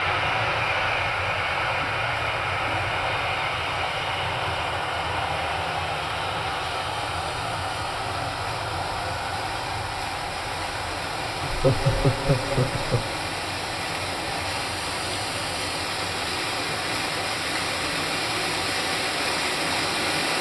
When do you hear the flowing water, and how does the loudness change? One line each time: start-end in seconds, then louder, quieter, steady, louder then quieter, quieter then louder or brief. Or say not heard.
0.0-20.3 louder.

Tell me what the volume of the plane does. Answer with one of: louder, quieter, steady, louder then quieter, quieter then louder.
quieter.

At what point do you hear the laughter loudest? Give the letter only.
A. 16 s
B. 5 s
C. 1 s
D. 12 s
D.